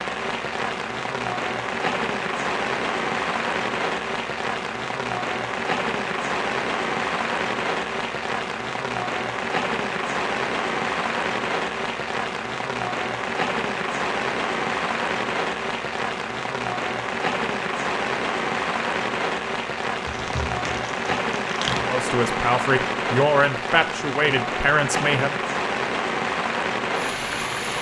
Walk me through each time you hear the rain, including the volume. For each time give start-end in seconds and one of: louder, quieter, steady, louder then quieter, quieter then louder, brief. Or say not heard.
0.0-27.7 steady.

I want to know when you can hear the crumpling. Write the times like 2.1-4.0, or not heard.
20.1-21.9.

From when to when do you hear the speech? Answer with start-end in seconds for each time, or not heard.
21.9-25.4.